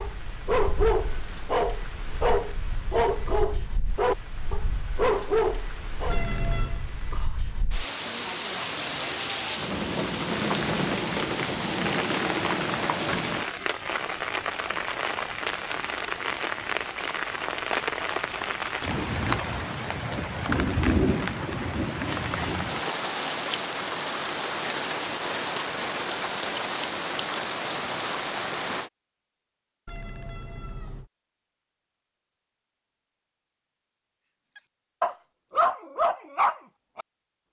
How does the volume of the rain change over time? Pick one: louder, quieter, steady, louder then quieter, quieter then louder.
louder.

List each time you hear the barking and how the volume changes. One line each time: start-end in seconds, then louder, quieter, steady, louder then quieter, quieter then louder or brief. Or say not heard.
0.0-6.2 steady
34.5-37.0 brief.